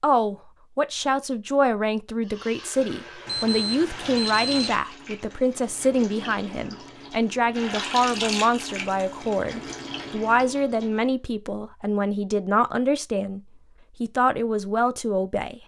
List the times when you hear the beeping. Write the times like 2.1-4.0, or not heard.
3.2-4.8.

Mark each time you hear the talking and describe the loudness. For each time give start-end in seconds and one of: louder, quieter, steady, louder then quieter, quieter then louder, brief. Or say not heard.
0.0-13.4 steady
14.0-15.6 brief.